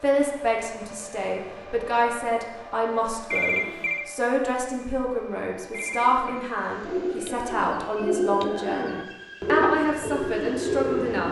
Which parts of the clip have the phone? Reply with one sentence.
The phone can be heard from 3.3 to 4.1 s and from 5.7 to 6.4 s.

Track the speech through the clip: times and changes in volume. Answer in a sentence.
The speech can be heard from 0.0 to 11.2 s, at a steady volume.